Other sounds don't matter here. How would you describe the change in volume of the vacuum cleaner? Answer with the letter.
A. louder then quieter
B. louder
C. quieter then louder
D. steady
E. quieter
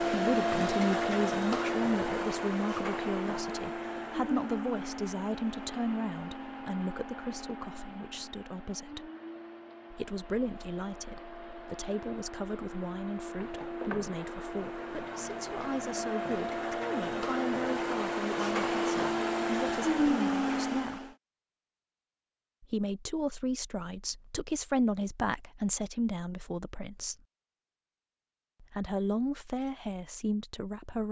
C.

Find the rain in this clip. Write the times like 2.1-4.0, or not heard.
not heard.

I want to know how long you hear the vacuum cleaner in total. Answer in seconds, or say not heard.
21 s.